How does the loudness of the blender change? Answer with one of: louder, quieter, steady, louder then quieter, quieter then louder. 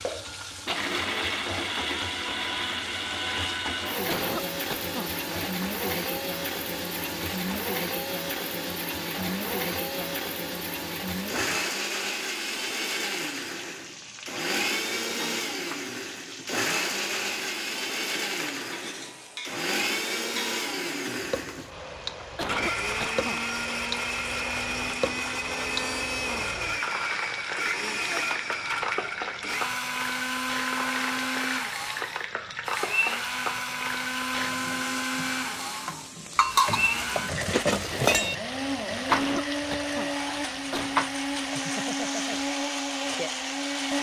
steady.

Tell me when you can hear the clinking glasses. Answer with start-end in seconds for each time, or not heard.
36.4-38.4.